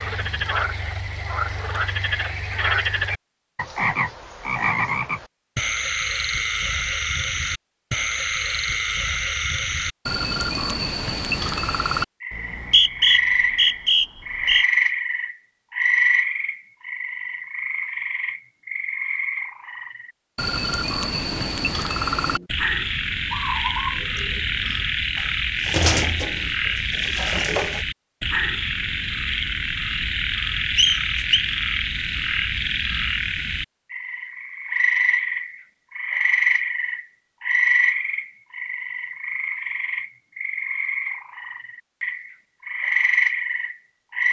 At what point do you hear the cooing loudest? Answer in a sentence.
The volume of the cooing peaks at 26 seconds.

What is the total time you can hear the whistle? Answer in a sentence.
You can hear the whistle for 3 seconds altogether.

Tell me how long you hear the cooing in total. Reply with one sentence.
You can hear the cooing for 7 seconds altogether.